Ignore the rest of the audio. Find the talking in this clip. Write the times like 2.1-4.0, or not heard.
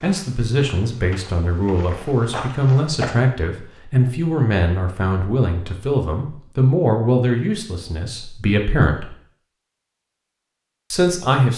0.0-9.2, 10.9-11.5.